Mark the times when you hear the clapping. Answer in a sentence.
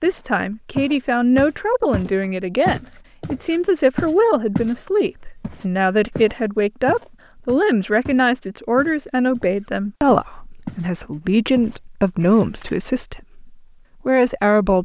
You can't hear the clapping here.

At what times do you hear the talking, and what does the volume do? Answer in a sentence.
You can hear the talking from 0.0 to 14.8 s, at a steady volume.